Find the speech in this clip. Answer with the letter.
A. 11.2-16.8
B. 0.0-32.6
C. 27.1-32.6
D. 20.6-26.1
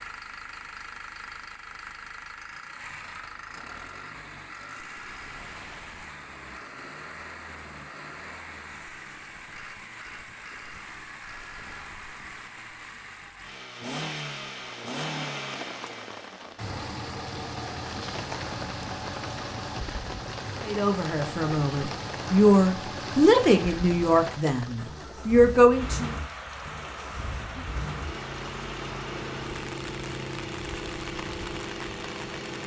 D.